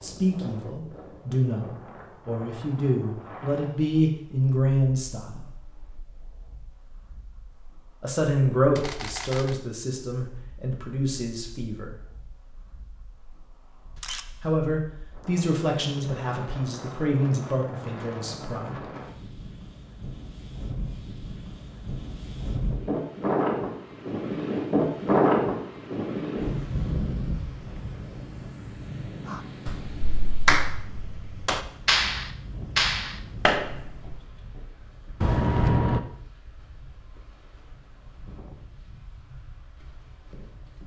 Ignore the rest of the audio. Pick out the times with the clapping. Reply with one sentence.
The clapping can be heard from 29.3 to 34.1 s.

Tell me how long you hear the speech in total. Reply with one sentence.
The speech can be heard for 14 seconds in total.